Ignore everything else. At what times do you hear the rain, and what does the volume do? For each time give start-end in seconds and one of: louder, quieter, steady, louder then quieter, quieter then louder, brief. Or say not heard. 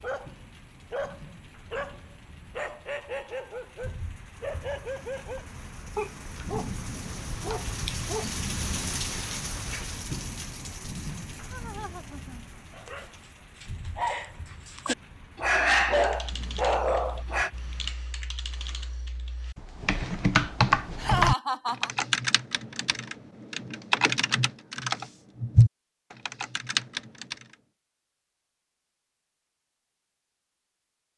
0.0-17.9 louder then quieter.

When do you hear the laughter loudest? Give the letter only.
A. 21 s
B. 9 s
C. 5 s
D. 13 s
A.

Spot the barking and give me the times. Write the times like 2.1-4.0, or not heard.
0.0-8.3, 12.7-17.5.